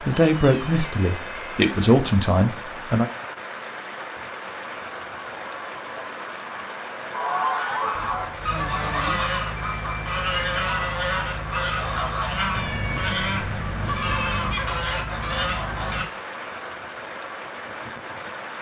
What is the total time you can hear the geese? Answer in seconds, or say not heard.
11 s.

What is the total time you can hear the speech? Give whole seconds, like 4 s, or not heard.
3 s.